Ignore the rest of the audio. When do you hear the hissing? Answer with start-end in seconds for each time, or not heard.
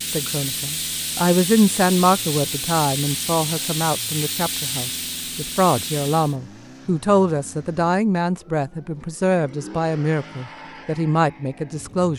0.0-6.3.